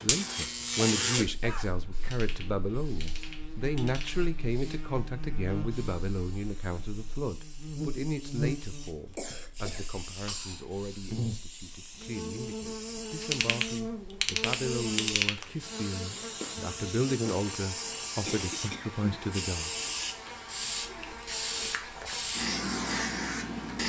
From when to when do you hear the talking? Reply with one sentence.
The talking can be heard from 0.0 to 19.9 s.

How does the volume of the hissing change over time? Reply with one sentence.
The volume of the hissing goes up.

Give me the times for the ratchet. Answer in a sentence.
You can hear the ratchet from 2.0 to 4.2 s and from 13.2 to 15.4 s.